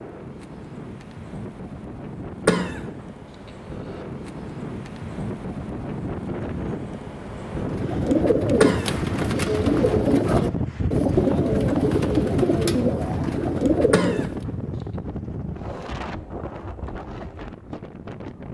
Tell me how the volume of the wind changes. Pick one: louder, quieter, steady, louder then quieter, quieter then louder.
louder then quieter.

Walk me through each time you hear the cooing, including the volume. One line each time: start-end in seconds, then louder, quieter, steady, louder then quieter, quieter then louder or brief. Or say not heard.
7.5-14.3 steady.